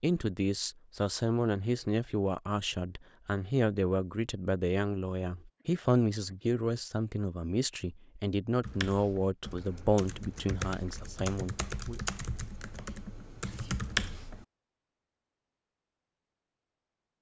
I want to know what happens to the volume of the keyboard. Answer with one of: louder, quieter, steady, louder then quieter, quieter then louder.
louder.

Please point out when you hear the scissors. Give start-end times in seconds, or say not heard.
not heard.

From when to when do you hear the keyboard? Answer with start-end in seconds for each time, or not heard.
8.6-14.4.